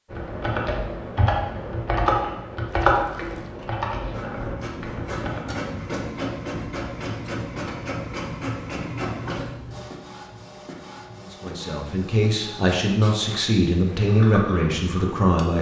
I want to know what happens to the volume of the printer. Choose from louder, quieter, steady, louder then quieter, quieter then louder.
quieter.